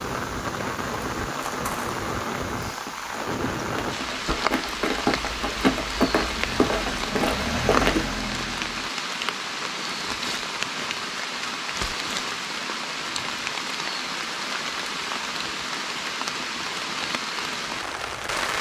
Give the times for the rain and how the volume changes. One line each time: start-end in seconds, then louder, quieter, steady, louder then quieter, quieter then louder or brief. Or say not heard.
0.0-18.5 steady.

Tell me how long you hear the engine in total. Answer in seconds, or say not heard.
4 s.